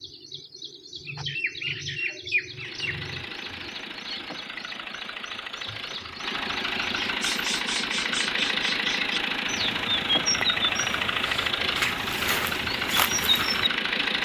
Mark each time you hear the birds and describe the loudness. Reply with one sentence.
You can hear the birds from 0.0 to 14.2 s, getting quieter then louder.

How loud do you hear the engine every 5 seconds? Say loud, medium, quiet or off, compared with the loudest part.
medium, loud, loud.